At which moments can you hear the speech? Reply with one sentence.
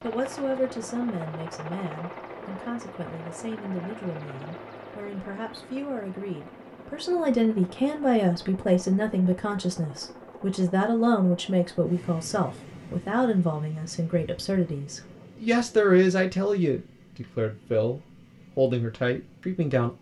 You can hear the speech from 0.0 to 19.9 s.